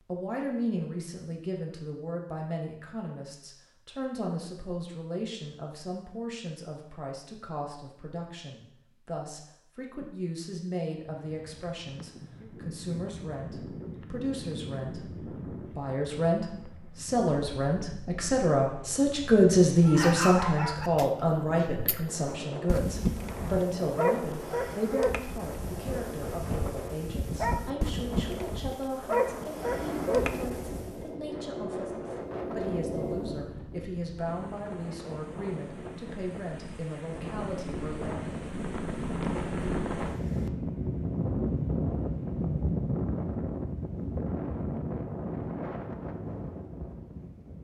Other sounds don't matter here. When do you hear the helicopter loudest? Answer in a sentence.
The volume of the helicopter peaks at 33 seconds.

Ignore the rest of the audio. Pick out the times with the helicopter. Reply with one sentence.
The helicopter can be heard from 29.6 to 33.5 s.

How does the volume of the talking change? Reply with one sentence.
The loudness of the talking goes up, then down.